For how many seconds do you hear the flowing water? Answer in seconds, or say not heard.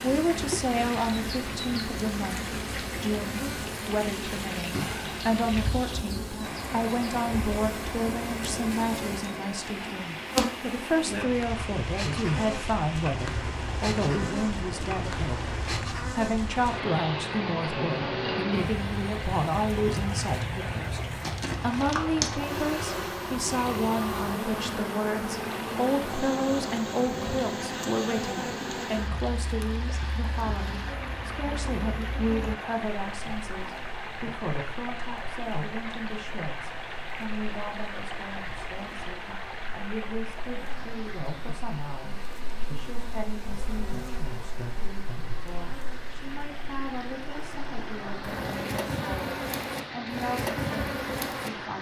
52 s.